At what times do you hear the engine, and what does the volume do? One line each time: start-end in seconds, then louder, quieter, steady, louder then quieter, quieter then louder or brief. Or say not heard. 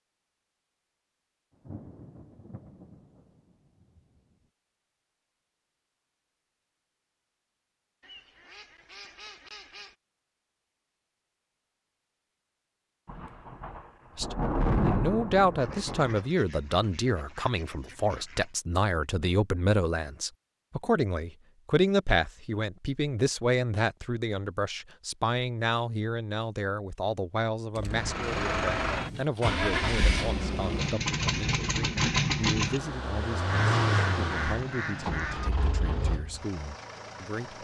27.9-37.5 quieter.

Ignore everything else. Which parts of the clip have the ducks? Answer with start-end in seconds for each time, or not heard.
8.0-9.9, 15.6-18.6, 33.5-35.5.